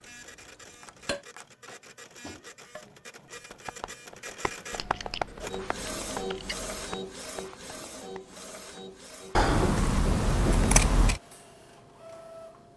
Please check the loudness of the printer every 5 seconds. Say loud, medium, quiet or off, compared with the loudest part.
medium, loud, medium.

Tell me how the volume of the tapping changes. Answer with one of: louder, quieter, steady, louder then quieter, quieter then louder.
louder then quieter.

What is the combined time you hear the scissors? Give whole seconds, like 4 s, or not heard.
5 s.